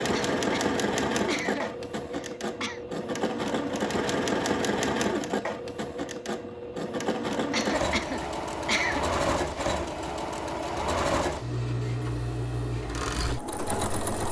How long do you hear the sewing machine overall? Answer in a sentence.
The sewing machine can be heard for 14 seconds in total.